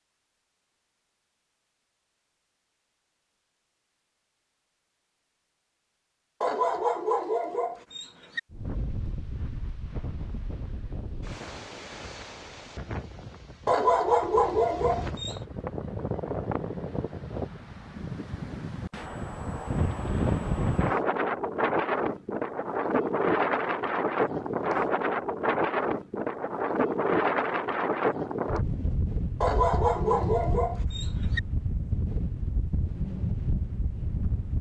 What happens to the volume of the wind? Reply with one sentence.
The loudness of the wind goes up, then down.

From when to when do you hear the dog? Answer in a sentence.
The dog can be heard from 6.4 to 8.4 s, from 13.7 to 15.3 s and from 29.4 to 31.4 s.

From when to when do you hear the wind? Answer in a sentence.
You can hear the wind from 8.5 to 34.5 s.